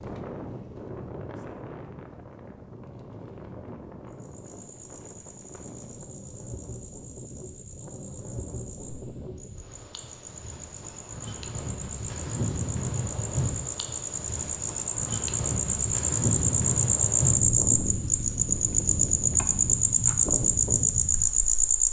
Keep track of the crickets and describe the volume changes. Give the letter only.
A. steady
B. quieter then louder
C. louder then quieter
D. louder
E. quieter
D.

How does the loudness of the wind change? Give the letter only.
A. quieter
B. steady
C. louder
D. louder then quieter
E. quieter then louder
C.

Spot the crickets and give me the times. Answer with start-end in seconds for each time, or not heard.
4.1-21.8.